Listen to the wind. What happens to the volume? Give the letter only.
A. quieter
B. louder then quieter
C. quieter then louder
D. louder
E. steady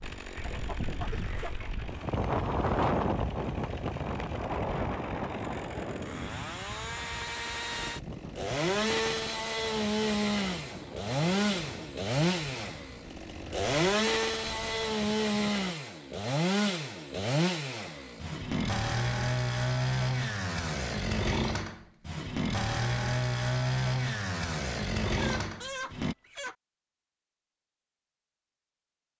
A.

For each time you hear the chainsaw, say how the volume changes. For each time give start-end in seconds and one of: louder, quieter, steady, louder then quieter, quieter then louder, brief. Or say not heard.
0.0-26.1 louder.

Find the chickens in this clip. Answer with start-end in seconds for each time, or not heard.
0.3-1.9, 25.1-26.6.